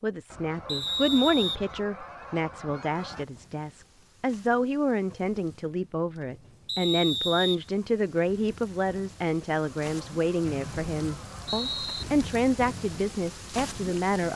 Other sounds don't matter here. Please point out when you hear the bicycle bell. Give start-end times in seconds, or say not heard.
not heard.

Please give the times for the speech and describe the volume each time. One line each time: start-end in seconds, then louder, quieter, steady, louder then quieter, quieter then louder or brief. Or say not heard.
0.0-14.3 steady.